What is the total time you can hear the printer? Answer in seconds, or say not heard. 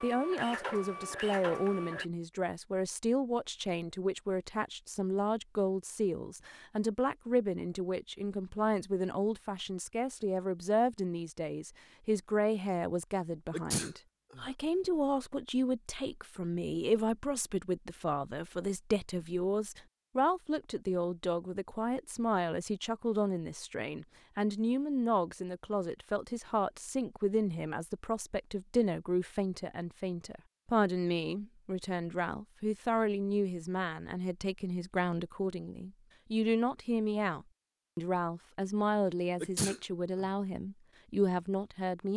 2 s.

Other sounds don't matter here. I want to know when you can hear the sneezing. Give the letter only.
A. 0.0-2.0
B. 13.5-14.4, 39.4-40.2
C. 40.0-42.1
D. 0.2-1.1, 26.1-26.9
B.